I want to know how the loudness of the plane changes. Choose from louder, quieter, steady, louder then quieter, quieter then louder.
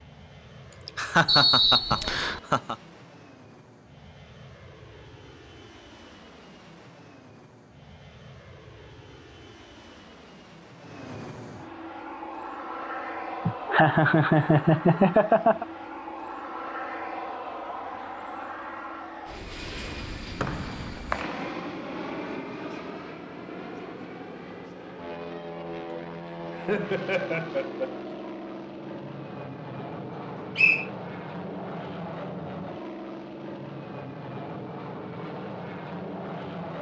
louder.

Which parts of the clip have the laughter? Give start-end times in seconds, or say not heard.
0.7-2.8, 13.4-15.7, 26.3-28.1.